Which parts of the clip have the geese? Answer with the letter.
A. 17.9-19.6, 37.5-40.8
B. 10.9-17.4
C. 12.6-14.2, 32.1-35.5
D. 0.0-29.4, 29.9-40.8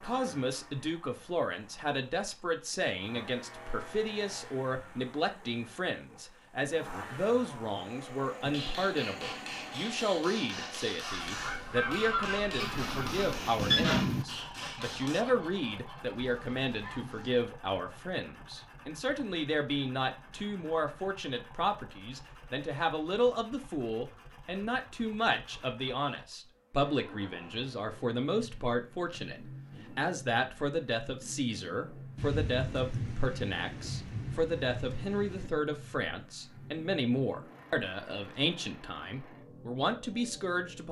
B.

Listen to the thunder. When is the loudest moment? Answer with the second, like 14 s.
14 s.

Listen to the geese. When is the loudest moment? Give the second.
14 s.